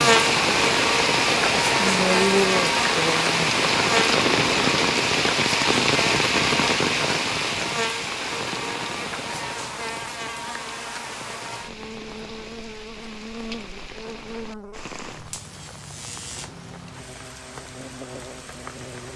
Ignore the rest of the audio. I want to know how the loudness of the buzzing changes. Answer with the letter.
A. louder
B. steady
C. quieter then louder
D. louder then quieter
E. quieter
E.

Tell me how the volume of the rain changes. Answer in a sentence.
The volume of the rain goes down.